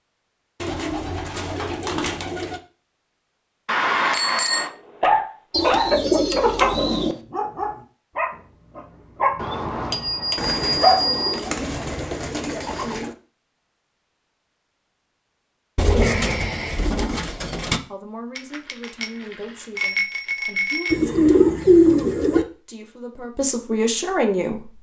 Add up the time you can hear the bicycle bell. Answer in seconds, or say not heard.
6 s.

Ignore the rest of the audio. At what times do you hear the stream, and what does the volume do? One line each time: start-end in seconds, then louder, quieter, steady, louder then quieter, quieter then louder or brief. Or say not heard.
not heard.